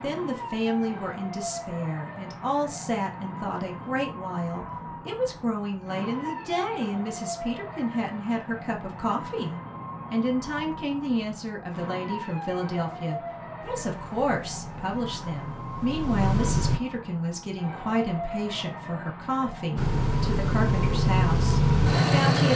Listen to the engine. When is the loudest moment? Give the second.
22 s.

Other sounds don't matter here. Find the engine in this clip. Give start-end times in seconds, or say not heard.
13.6-16.8, 19.8-22.5.